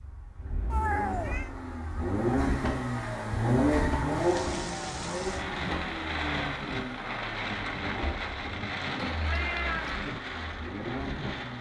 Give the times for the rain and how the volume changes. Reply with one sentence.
You can hear the rain from 4.1 to 11.5 s, at a steady volume.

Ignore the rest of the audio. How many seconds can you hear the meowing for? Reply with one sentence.
You can hear the meowing for 2 seconds altogether.